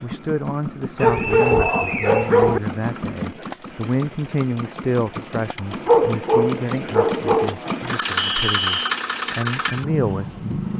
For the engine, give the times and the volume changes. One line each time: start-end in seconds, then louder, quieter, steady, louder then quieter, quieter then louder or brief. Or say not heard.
0.0-10.7 louder.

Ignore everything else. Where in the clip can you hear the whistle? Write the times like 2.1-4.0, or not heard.
1.0-2.3, 8.2-8.8.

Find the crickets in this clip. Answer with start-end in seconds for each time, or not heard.
not heard.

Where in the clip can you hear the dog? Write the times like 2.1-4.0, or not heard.
1.0-2.6, 5.5-7.5.